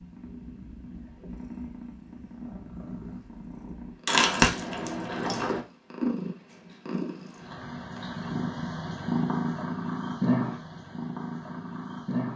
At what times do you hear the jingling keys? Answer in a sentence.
The jingling keys can be heard from 4.0 to 5.6 s.